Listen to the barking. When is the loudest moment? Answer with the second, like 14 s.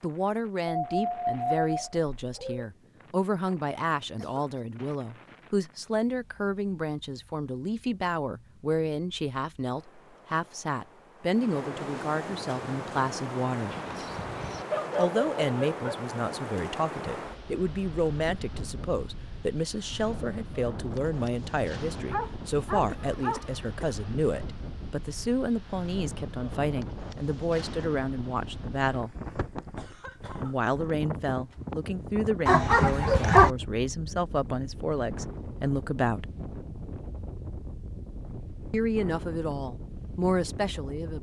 33 s.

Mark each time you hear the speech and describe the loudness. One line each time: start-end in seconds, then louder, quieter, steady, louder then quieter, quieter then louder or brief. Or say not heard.
0.0-13.8 steady
14.9-29.1 steady
30.4-36.3 steady
38.7-41.1 brief.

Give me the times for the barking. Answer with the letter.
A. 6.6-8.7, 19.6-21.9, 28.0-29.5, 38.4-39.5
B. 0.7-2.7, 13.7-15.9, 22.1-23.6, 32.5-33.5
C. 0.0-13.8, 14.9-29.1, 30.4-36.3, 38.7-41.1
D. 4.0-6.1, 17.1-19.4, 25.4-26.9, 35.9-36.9
B.